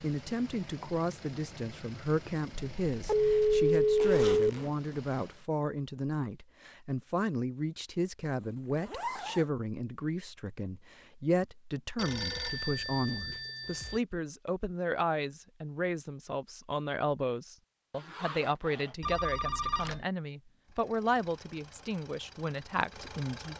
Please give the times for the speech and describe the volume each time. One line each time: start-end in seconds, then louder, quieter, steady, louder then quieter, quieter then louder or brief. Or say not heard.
0.0-23.5 steady.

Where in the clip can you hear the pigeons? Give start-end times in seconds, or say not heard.
not heard.